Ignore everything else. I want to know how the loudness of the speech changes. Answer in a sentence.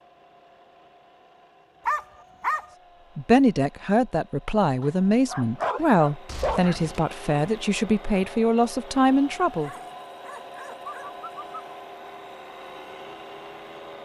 The volume of the speech stays about the same.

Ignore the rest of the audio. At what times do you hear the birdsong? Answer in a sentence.
You can't hear the birdsong here.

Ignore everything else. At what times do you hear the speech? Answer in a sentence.
You can hear the speech from 3.1 to 9.7 s.